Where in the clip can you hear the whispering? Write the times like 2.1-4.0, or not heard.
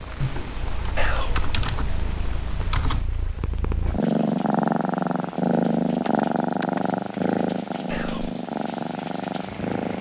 0.9-1.4, 7.9-8.3.